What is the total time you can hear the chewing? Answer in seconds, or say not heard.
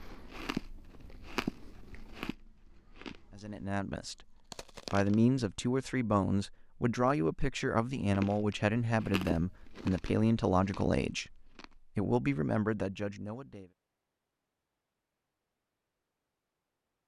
9 s.